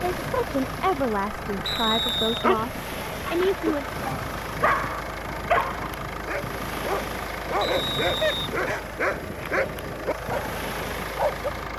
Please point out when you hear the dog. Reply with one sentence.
You can hear the dog from 2.3 to 11.5 s.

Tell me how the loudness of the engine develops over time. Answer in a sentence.
The volume of the engine stays about the same.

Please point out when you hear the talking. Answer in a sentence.
You can hear the talking from 0.1 to 3.9 s.